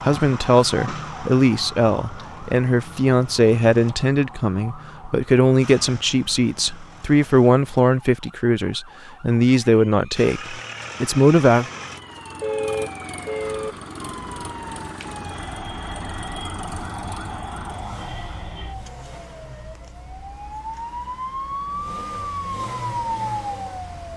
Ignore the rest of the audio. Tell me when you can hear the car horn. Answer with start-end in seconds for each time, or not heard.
12.4-13.8.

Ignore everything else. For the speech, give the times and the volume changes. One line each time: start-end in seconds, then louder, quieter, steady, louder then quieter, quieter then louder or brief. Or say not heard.
0.1-11.7 steady.